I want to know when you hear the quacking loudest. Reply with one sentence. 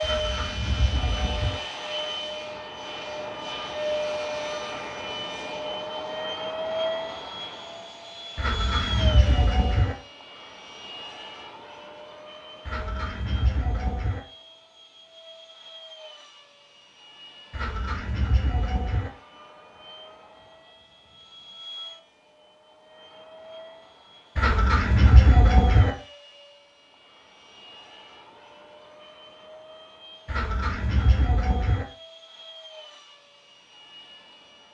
The loudest moment of the quacking is at 25 seconds.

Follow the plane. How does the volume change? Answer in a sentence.
The volume of the plane goes down.